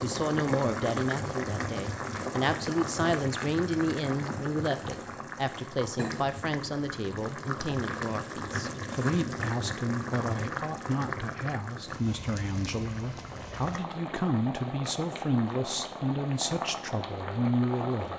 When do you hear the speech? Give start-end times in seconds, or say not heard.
0.0-18.1.